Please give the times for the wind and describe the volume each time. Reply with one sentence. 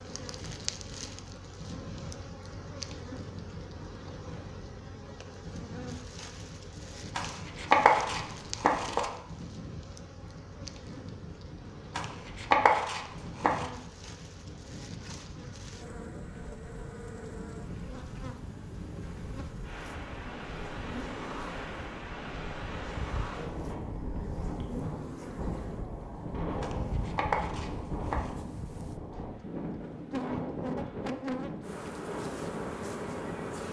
The wind can be heard from 0.0 to 33.6 s, getting louder.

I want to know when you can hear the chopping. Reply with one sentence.
The chopping can be heard from 7.2 to 9.1 s, from 11.9 to 13.7 s and from 26.6 to 28.3 s.